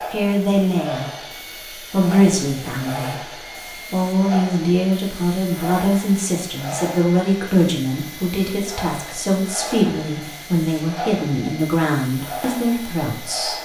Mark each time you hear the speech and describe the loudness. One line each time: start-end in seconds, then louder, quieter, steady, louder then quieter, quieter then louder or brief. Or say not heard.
0.1-13.6 steady.